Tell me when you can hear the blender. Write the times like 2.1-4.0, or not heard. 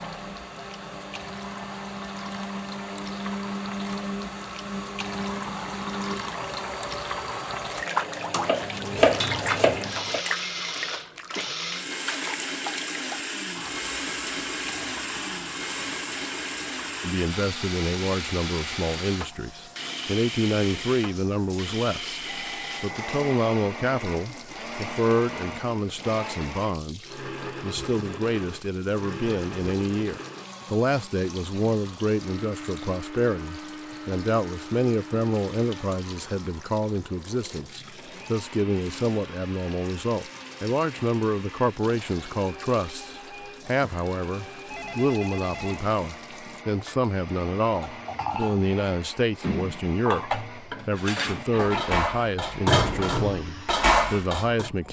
0.0-54.8.